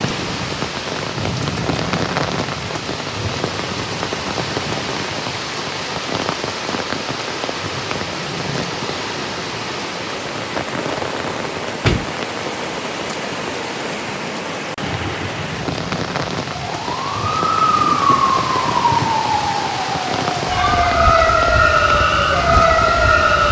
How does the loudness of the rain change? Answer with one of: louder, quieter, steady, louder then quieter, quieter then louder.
steady.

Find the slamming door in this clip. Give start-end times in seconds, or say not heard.
11.4-12.1.